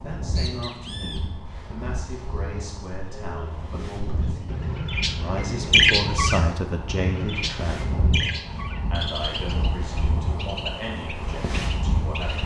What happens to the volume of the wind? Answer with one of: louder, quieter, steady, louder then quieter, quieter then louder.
louder.